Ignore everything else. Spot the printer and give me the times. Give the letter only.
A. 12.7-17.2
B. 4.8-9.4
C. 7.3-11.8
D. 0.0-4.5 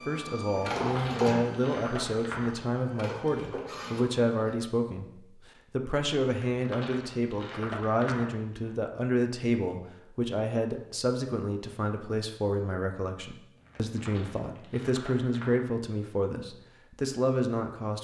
D.